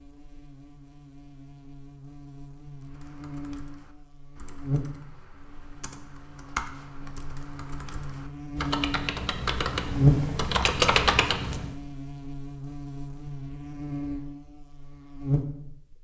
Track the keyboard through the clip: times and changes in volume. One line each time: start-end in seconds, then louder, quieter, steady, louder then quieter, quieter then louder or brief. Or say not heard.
2.8-11.8 louder.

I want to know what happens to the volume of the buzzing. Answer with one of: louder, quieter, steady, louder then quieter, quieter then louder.
louder then quieter.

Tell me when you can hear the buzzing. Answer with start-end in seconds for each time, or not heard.
0.0-15.9.